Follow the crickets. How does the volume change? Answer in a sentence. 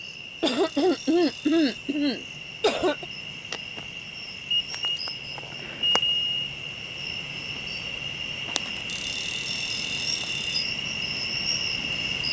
The loudness of the crickets goes up.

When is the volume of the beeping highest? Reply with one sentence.
The volume of the beeping peaks at 6 seconds.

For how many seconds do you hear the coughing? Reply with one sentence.
You can hear the coughing for 3 seconds altogether.